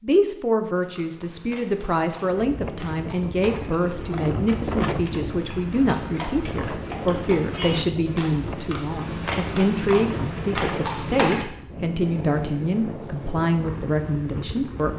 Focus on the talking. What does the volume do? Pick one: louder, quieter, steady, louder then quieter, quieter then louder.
steady.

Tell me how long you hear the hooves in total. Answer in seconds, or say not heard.
11 s.